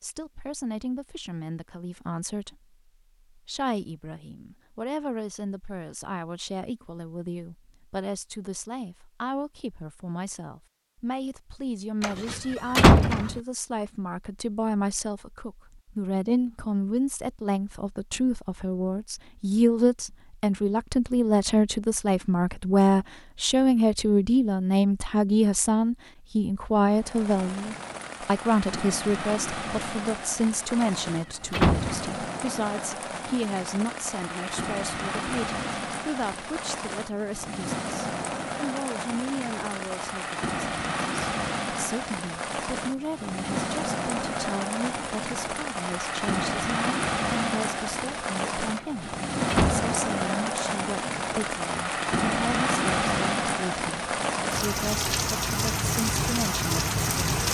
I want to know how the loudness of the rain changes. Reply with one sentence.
The volume of the rain goes up.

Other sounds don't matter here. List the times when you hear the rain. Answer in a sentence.
The rain can be heard from 26.9 to 57.4 s.